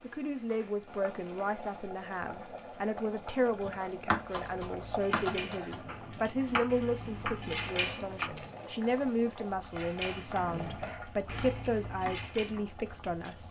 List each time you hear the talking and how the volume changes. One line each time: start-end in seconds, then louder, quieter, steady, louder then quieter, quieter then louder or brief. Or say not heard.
0.0-13.4 steady.